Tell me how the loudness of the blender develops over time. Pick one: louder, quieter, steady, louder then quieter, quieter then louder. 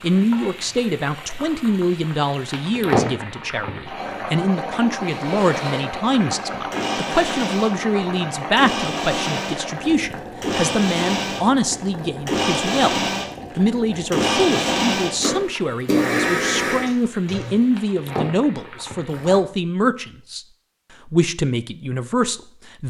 louder.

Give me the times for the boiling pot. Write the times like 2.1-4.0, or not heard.
0.0-19.4.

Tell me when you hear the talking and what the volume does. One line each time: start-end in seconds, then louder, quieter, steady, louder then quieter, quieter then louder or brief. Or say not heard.
0.0-20.4 steady
21.1-22.8 brief.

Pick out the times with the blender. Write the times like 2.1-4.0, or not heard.
5.0-17.6.